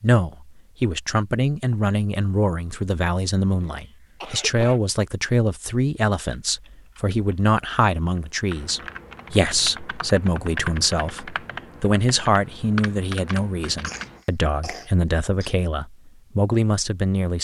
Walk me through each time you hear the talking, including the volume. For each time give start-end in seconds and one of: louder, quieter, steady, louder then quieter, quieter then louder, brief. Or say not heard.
0.0-17.3 steady.